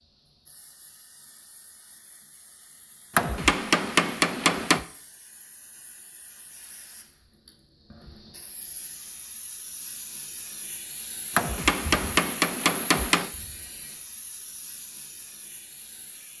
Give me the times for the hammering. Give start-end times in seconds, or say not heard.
3.1-4.8, 11.3-13.3.